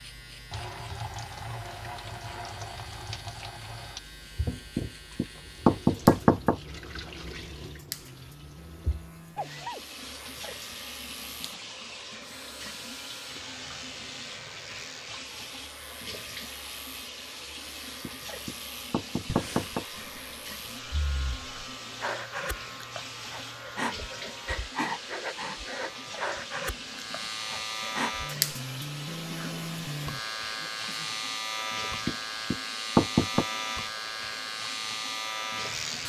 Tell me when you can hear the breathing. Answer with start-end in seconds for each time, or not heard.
19.2-28.3.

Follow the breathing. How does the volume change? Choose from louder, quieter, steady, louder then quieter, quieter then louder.
louder.